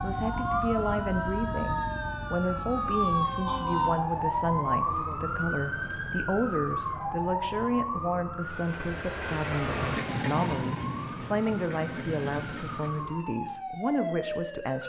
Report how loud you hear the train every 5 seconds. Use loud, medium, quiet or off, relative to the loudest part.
off, loud, loud.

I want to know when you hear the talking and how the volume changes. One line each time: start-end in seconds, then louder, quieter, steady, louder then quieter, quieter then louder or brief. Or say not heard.
0.0-14.8 steady.